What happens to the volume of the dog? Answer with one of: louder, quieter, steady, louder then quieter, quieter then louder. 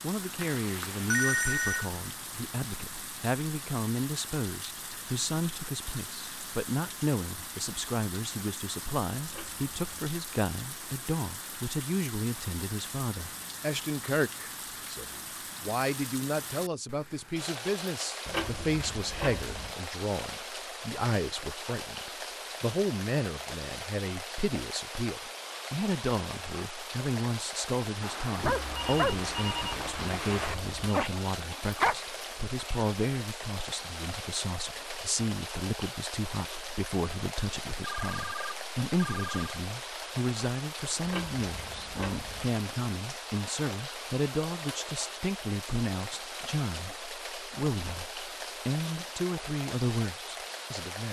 quieter then louder.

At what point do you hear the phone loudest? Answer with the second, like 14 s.
1 s.